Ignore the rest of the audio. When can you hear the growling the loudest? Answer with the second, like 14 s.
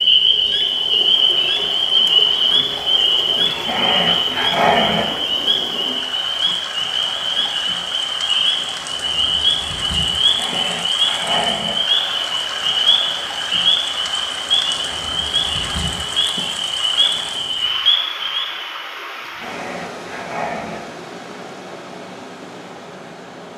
5 s.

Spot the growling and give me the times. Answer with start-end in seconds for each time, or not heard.
3.5-5.0, 10.2-11.8, 19.2-20.8.